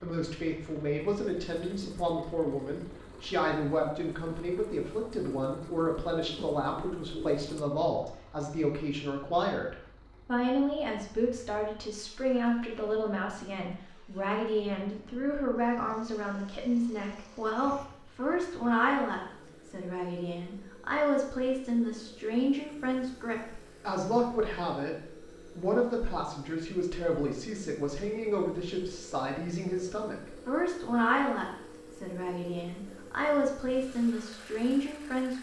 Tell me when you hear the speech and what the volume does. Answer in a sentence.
The speech can be heard from 0.0 to 35.3 s, at a steady volume.